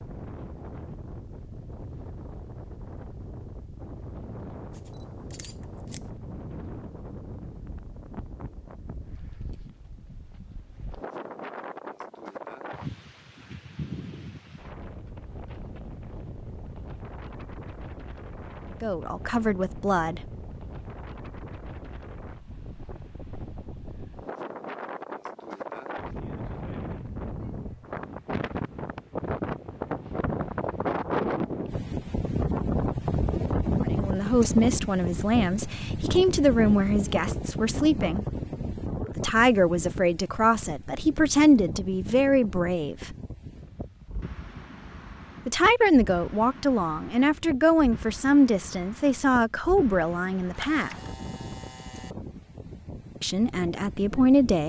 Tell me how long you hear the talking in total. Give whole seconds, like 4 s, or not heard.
17 s.